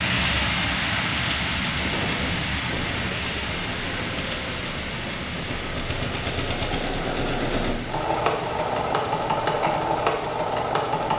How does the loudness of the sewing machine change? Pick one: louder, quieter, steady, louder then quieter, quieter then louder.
louder.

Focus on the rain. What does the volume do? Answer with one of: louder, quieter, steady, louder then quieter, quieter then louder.
quieter.